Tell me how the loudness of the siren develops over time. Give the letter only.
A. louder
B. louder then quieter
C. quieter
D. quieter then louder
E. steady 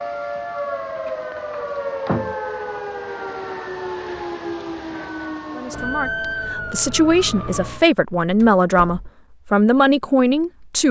E.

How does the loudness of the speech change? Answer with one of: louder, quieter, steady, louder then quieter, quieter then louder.
louder.